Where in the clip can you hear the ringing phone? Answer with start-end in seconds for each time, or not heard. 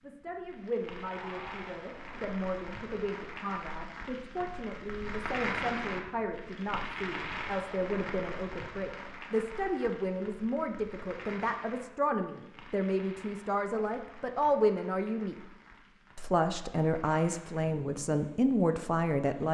1.1-1.7.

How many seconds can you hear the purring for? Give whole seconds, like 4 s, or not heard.
not heard.